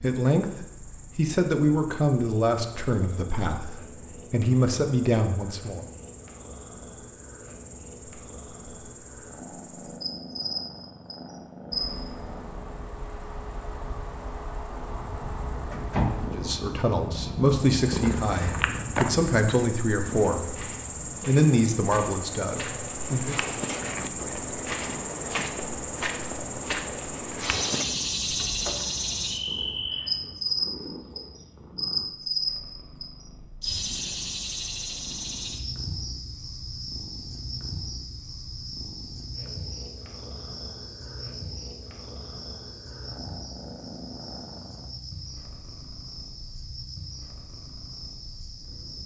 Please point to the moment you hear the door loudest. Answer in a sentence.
The volume of the door peaks at 16 seconds.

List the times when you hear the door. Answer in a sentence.
The door can be heard from 15.7 to 16.4 s and from 28.3 to 28.9 s.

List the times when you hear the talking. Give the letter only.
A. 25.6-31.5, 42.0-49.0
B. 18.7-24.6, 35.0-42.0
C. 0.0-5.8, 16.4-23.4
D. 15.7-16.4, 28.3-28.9
C.